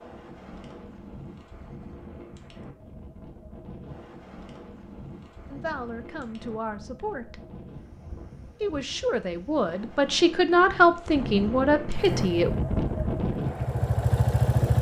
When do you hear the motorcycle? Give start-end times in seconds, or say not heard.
11.9-14.7.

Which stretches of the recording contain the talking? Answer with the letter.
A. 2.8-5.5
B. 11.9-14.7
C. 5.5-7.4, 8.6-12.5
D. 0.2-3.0
C.